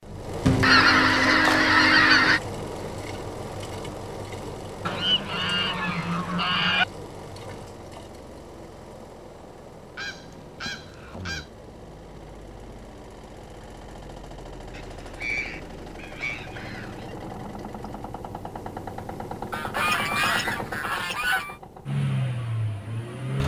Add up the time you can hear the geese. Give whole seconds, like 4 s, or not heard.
10 s.